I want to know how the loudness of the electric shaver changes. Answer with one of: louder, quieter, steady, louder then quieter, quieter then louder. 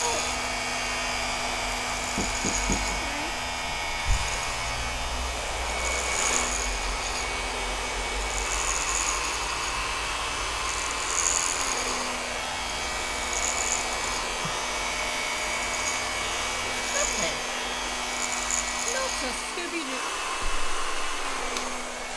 steady.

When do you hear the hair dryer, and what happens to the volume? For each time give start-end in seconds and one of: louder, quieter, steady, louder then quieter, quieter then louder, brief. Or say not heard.
0.0-22.1 steady.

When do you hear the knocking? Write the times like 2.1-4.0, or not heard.
2.1-3.1.